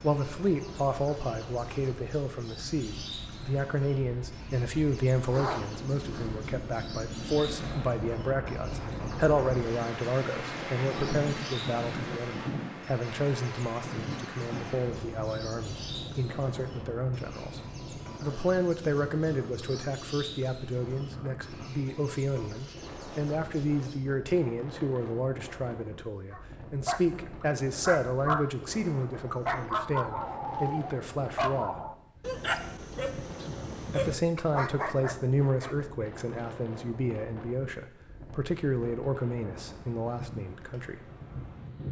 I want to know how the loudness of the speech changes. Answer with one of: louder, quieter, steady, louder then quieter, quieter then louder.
steady.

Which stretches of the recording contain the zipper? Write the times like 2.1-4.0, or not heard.
5.3-6.4.